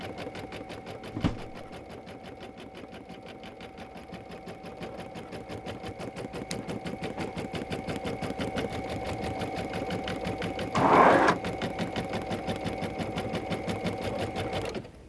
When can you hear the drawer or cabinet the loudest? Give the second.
11 s.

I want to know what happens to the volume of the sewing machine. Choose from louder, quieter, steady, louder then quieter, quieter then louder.
louder.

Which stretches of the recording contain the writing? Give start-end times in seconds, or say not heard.
not heard.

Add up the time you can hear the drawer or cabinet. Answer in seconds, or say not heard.
2 s.